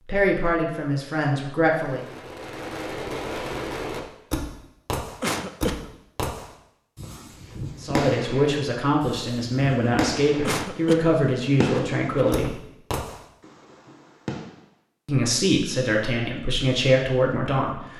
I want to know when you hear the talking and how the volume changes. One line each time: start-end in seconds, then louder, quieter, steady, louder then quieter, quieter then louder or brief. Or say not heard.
0.0-2.0 brief
7.8-12.6 steady
15.1-17.9 brief.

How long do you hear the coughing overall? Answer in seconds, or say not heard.
3 s.